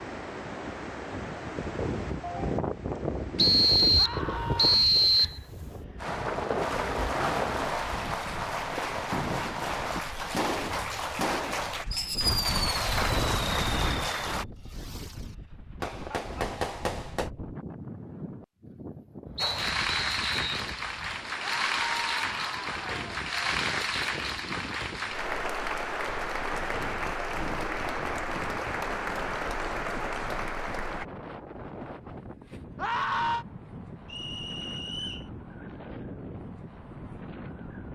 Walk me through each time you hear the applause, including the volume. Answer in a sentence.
You can hear the applause from 6.8 to 14.4 s, getting louder; and from 19.4 to 31.1 s, at a steady volume.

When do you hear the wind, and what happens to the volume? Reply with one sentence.
You can hear the wind from 0.0 to 37.9 s, getting quieter.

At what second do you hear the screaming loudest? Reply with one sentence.
The volume of the screaming peaks at 33 seconds.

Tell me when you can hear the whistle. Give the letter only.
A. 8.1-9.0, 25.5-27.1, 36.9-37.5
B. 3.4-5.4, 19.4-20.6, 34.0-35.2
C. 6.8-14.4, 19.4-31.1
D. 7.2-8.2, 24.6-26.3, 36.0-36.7
B.